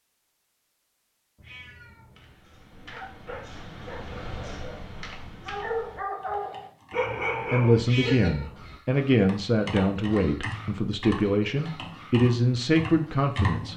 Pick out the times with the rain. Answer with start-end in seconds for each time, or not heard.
not heard.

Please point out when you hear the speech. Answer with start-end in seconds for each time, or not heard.
7.5-13.7.